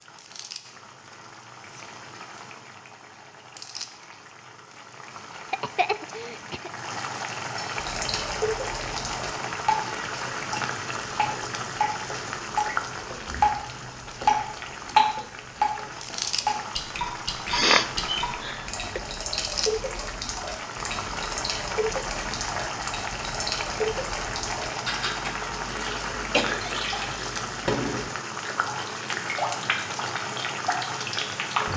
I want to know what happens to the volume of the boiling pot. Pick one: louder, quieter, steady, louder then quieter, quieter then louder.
louder.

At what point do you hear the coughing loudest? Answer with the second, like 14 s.
18 s.